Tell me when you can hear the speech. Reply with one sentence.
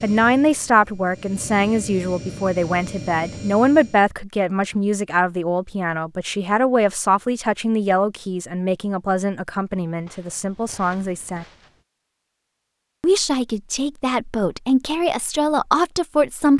You can hear the speech from 0.0 to 11.4 s and from 13.0 to 16.5 s.